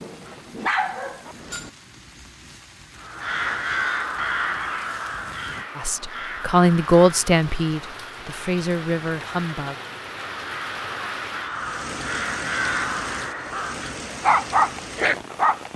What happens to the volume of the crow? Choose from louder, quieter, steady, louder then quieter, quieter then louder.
quieter then louder.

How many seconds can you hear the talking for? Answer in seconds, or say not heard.
4 s.